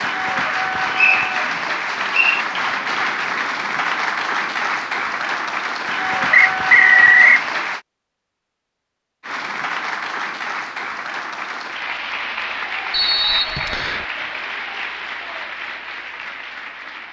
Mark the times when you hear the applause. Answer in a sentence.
The applause can be heard from 0.0 to 7.8 s and from 9.2 to 17.0 s.